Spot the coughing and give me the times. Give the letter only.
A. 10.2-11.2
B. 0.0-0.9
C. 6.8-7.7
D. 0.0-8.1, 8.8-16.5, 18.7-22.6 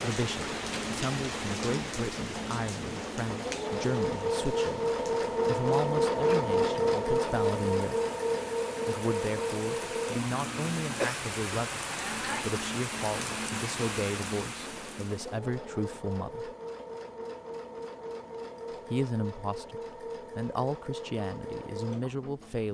A.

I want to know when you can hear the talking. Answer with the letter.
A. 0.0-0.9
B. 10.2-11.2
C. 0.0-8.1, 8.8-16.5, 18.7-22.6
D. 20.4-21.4
C.